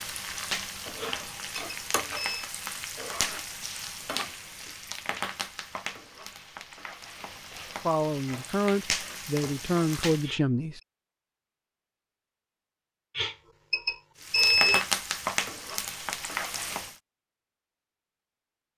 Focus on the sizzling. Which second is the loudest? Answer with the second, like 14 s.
15 s.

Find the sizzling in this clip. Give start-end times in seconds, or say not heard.
0.0-10.3, 14.2-16.9.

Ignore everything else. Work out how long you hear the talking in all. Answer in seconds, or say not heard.
3 s.